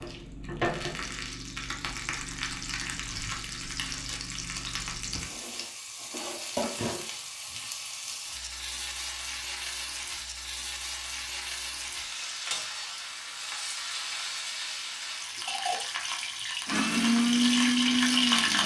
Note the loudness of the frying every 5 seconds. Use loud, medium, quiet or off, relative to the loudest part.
medium, medium, medium, loud.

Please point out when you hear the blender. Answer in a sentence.
The blender can be heard from 16.6 to 18.6 s.